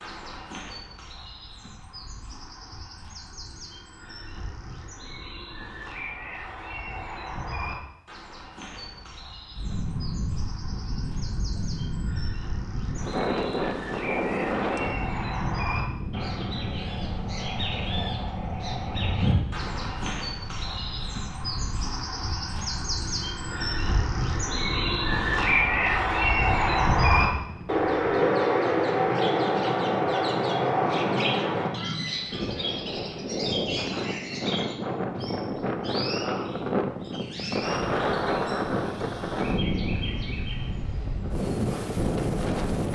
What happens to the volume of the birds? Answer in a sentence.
The loudness of the birds goes up, then down.